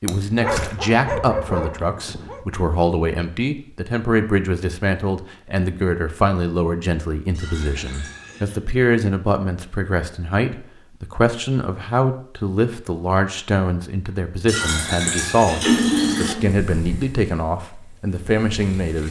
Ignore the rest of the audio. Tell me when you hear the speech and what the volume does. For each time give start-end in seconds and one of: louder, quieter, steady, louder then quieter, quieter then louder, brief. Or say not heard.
0.0-19.0 steady.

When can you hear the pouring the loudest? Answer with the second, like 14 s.
16 s.